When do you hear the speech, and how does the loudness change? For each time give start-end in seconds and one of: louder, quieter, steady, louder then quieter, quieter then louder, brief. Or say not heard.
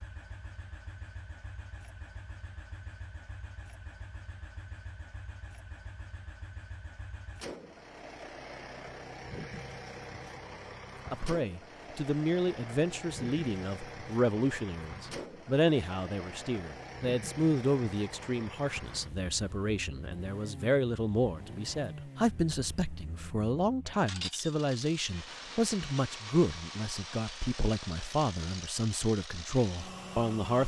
11.1-30.6 steady.